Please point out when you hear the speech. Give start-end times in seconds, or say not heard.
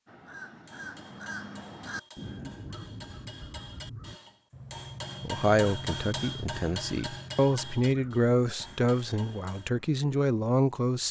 5.2-11.0.